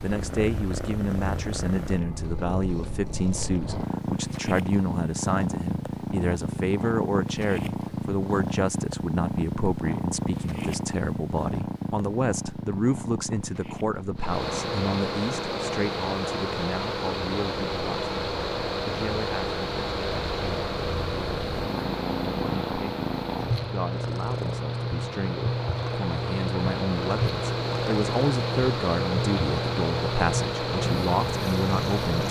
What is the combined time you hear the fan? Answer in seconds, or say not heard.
18 s.